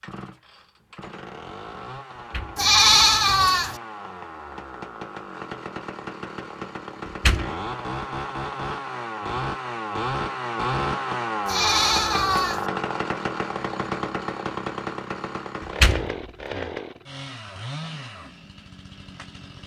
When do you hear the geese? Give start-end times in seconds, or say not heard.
not heard.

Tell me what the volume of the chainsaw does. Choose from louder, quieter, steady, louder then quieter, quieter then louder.
louder then quieter.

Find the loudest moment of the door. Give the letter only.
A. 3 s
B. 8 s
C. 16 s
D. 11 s
C.